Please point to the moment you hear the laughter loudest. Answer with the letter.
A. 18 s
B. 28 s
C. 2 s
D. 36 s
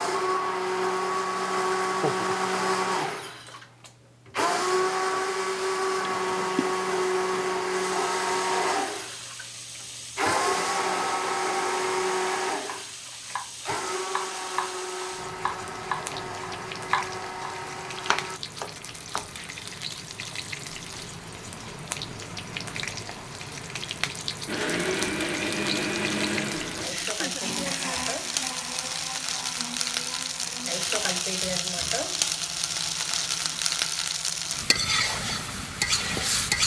C.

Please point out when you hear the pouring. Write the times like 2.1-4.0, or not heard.
not heard.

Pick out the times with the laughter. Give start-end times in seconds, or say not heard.
1.9-2.4, 26.9-27.6.